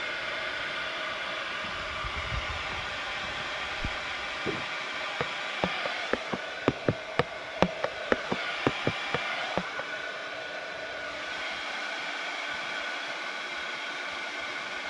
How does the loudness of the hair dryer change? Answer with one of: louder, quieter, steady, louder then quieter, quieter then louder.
steady.